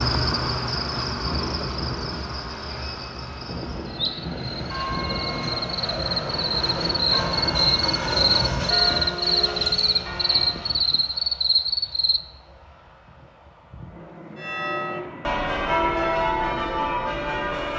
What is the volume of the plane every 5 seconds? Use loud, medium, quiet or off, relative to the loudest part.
medium, loud, quiet, medium.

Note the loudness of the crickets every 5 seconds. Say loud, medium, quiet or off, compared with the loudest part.
medium, loud, loud, off.